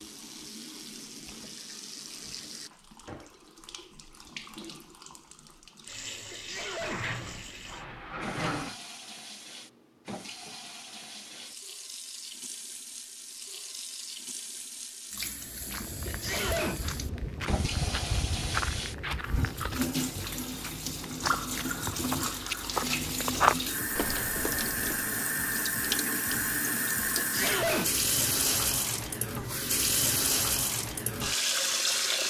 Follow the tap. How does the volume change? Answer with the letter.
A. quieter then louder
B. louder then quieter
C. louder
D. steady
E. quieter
C.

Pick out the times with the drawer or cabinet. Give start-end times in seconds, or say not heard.
6.8-8.8.